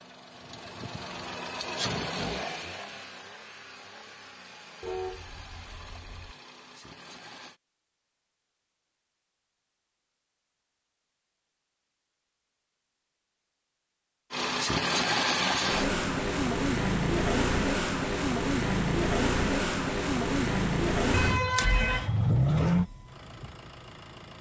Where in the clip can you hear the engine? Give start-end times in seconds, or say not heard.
0.0-7.6, 14.3-24.3.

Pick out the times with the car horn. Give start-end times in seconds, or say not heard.
4.8-6.3, 21.1-22.9.